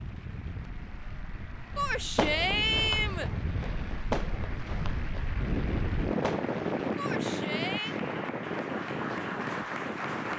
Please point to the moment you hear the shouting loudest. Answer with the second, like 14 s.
3 s.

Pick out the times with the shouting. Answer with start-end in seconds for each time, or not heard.
1.8-3.3, 7.0-8.0.